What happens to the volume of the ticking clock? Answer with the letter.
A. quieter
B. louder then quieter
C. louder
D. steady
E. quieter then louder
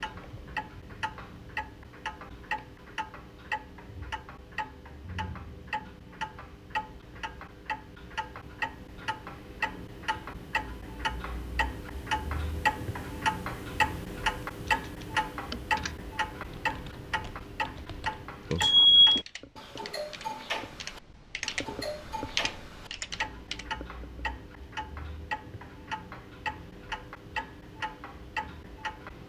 B.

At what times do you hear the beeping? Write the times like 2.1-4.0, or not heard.
18.5-19.2.